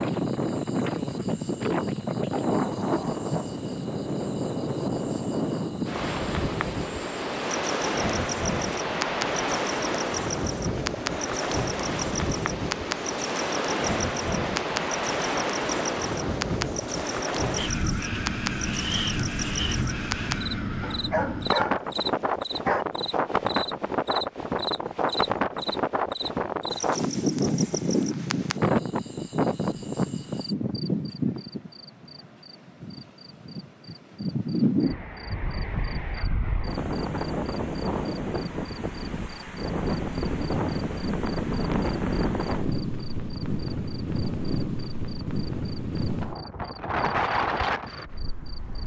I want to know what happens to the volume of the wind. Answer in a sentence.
The volume of the wind stays about the same.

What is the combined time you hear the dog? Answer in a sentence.
You can hear the dog for 3 seconds altogether.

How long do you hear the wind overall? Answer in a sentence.
The wind can be heard for 49 seconds in total.